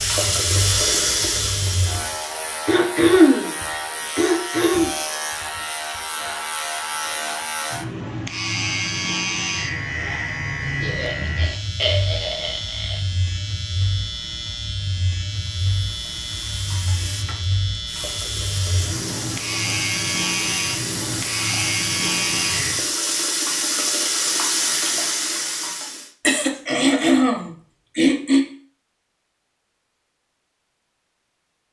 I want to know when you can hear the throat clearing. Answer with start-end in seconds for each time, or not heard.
2.6-3.5, 4.2-4.9, 10.8-13.0, 26.2-28.4.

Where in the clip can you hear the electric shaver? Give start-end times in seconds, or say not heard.
0.0-22.9.